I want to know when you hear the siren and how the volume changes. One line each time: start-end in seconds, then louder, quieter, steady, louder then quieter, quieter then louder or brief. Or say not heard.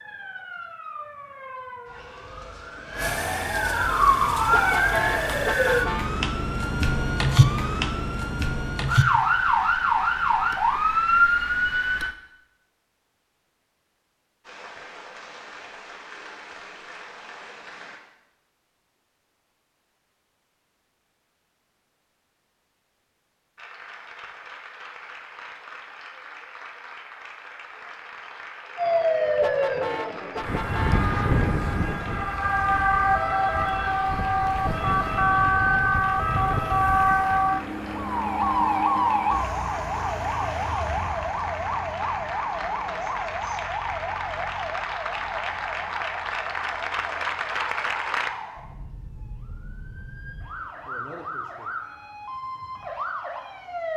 0.0-12.2 louder
28.8-53.9 quieter.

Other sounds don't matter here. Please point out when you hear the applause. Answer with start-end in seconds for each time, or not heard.
14.4-18.0, 23.6-48.3.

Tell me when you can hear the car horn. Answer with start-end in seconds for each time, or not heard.
4.5-6.1, 29.4-31.1.